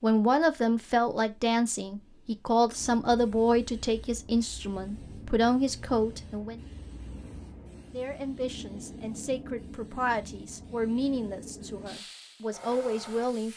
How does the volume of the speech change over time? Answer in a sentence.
The volume of the speech goes down.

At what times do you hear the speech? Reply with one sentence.
You can hear the speech from 0.0 to 6.6 s and from 7.9 to 13.5 s.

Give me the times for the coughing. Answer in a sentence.
You can't hear the coughing here.